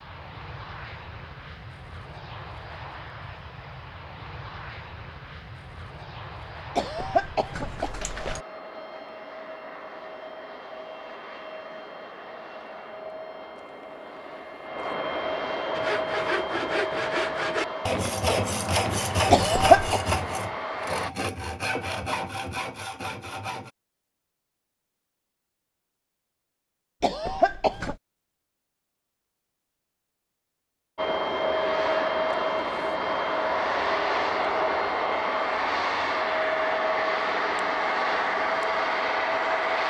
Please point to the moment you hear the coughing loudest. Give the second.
20 s.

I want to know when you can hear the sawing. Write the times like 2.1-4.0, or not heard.
15.8-23.7.